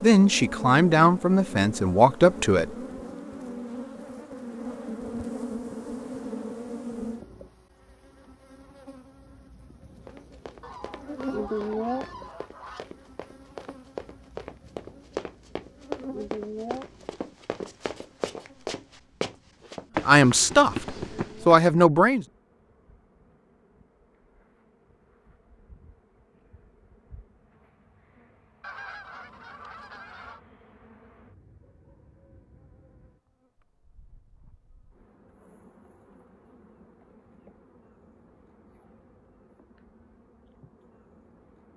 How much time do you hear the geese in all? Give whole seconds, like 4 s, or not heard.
4 s.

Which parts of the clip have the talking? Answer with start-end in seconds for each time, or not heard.
0.0-2.7, 20.1-22.2.